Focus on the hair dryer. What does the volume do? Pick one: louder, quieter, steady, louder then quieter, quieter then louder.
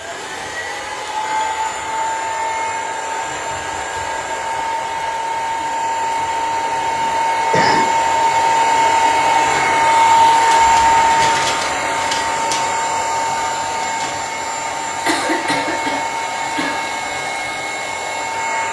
louder then quieter.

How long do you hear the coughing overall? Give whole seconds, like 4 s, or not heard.
3 s.